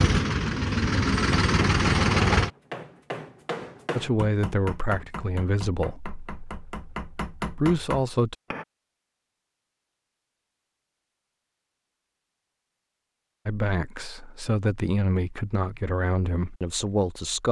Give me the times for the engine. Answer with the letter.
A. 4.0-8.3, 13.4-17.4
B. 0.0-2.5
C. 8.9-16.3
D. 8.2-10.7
B.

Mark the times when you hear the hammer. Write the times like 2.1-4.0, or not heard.
1.3-8.7.